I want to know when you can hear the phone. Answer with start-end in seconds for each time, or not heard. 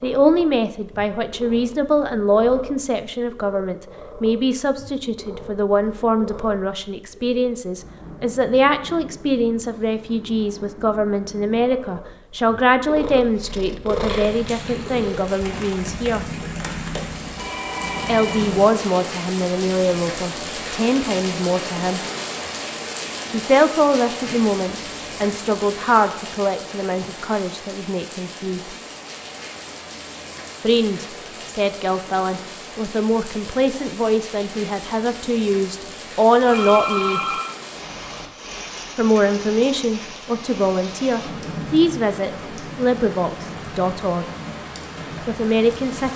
17.4-19.2, 36.5-37.5.